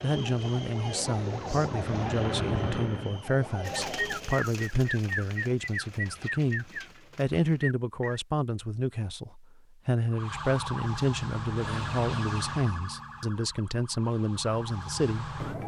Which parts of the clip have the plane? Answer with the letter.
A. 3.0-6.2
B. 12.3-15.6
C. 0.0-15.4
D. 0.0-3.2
D.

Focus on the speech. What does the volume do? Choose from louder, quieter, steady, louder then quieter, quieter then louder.
steady.